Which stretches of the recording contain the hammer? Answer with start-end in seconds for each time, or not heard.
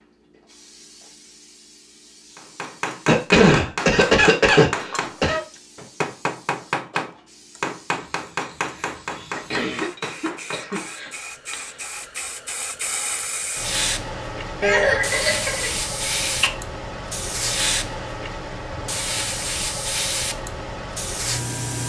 2.4-11.9.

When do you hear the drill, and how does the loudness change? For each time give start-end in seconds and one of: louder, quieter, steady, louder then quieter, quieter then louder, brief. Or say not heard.
not heard.